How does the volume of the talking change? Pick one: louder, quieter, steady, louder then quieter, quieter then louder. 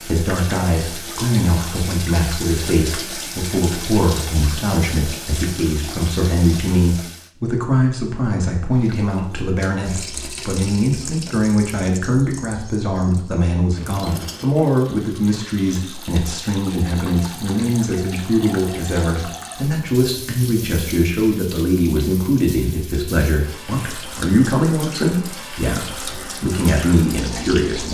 steady.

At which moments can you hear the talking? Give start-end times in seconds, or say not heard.
0.0-27.8.